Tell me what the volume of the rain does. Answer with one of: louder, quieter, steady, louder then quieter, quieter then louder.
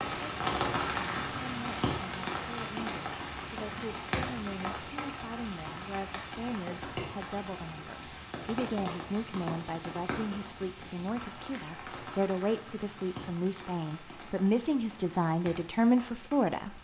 quieter.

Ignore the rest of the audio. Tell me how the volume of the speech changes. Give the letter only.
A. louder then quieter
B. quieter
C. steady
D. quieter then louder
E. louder
E.